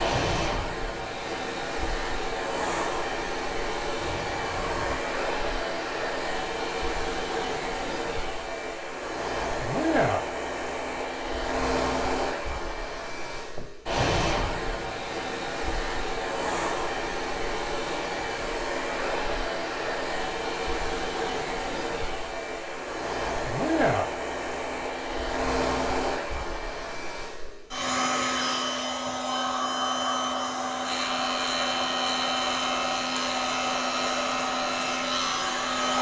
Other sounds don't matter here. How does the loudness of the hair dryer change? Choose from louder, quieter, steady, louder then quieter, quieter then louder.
steady.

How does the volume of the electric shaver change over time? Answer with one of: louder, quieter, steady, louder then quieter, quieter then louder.
steady.